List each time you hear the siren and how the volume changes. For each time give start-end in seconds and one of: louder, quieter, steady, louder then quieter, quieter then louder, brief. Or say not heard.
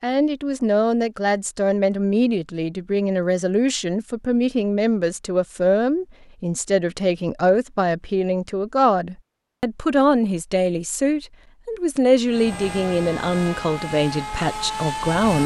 not heard.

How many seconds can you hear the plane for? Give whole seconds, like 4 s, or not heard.
3 s.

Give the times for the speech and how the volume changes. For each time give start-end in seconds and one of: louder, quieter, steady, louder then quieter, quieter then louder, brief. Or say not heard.
0.0-15.4 steady.